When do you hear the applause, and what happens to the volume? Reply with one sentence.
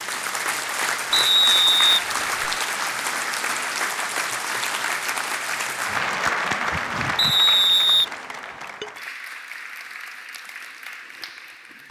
You can hear the applause from 0.0 to 11.8 s, getting quieter.